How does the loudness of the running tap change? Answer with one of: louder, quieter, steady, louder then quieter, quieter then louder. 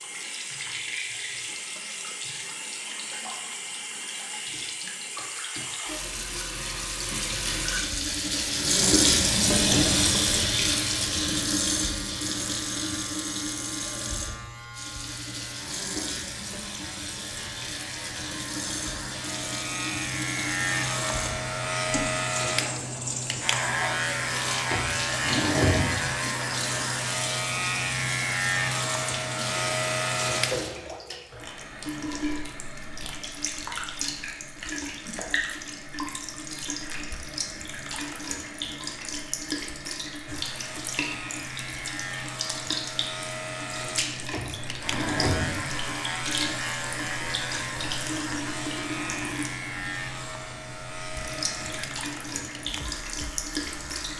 quieter.